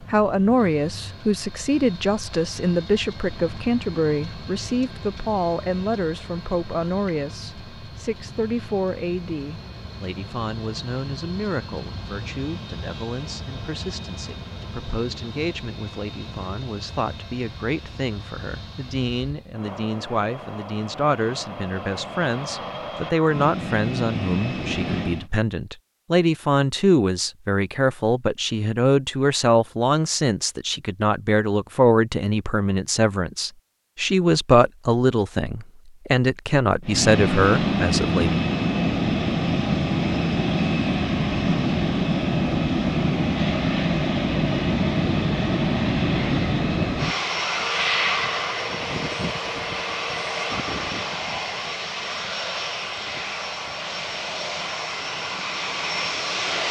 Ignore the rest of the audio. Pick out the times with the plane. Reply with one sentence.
You can hear the plane from 0.0 to 25.3 s and from 36.9 to 56.6 s.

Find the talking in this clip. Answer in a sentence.
You can hear the talking from 0.1 to 38.4 s.